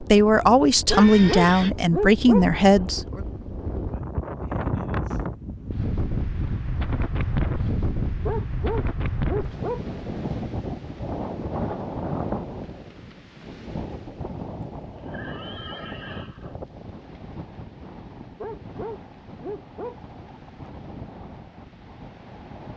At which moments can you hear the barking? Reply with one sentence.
You can hear the barking from 0.9 to 2.5 s, from 8.2 to 9.8 s and from 18.4 to 20.0 s.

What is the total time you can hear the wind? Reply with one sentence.
You can hear the wind for 23 seconds altogether.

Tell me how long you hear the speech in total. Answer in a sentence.
You can hear the speech for 3 seconds altogether.